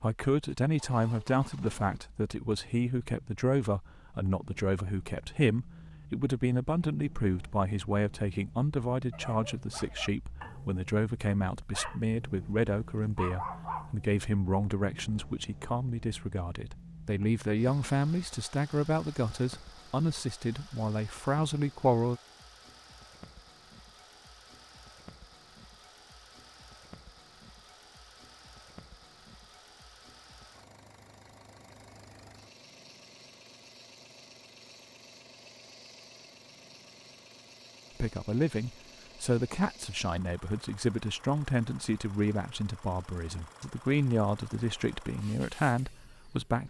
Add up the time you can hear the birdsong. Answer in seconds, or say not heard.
not heard.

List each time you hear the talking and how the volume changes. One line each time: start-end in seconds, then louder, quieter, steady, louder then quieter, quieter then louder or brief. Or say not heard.
0.0-22.2 steady
38.0-46.6 steady.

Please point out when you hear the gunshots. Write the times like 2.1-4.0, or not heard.
not heard.